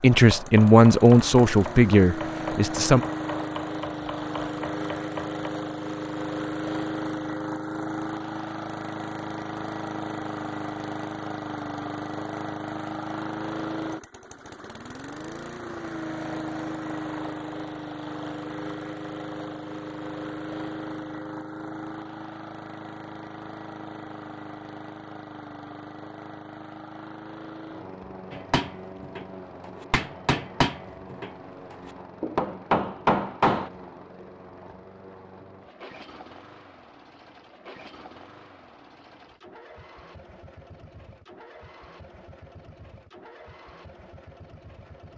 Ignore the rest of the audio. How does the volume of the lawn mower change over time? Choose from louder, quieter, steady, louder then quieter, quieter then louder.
quieter.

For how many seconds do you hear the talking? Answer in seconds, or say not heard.
3 s.